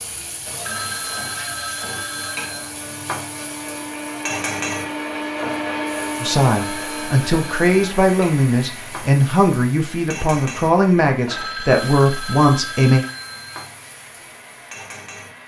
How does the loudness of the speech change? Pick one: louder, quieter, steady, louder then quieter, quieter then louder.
steady.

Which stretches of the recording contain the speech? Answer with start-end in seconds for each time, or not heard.
6.2-13.1.